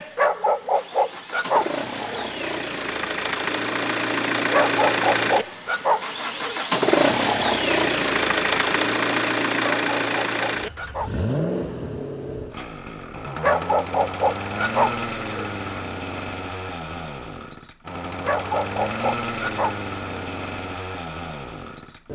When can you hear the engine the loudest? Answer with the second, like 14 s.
7 s.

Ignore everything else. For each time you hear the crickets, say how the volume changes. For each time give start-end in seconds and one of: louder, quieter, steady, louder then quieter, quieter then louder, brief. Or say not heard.
not heard.